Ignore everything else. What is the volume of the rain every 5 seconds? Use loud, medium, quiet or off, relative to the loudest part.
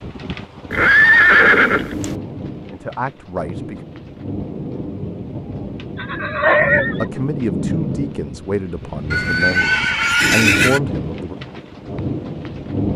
medium, loud, loud.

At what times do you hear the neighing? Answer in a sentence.
You can hear the neighing from 0.7 to 2.1 s, from 6.0 to 7.0 s and from 9.1 to 10.8 s.